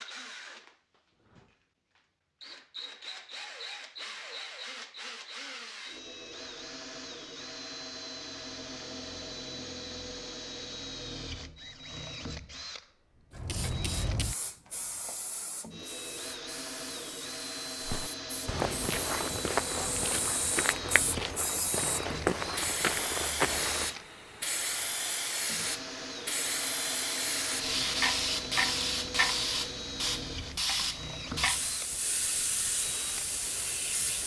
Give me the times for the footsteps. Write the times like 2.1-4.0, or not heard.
17.8-23.9.